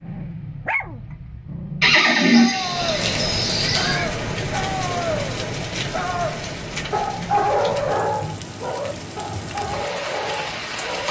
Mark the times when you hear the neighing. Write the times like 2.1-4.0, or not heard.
1.8-4.1.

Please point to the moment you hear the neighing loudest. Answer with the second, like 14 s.
2 s.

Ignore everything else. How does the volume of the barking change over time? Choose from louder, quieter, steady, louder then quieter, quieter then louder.
louder then quieter.